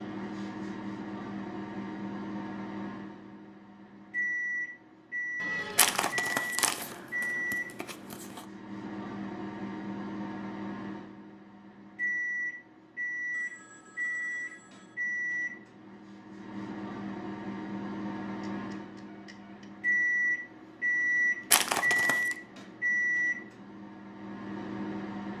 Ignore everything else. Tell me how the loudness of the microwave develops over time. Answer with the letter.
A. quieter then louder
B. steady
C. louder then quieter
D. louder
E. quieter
D.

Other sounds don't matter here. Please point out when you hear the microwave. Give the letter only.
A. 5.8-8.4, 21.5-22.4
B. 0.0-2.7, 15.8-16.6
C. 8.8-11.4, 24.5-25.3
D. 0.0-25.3
D.